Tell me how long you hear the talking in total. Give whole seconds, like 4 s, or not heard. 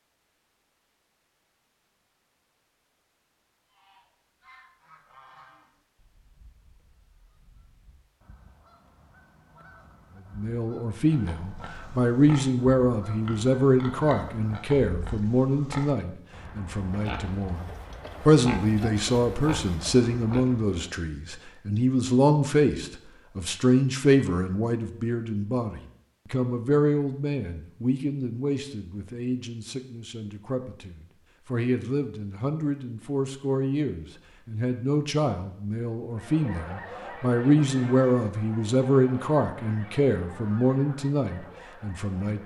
32 s.